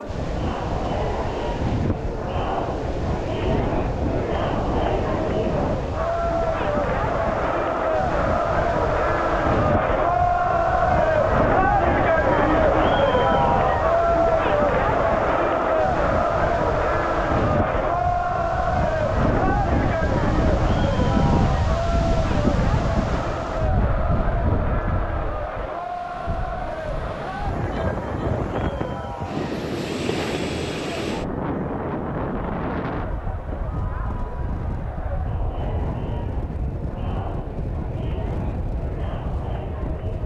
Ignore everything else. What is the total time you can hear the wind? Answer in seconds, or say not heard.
40 s.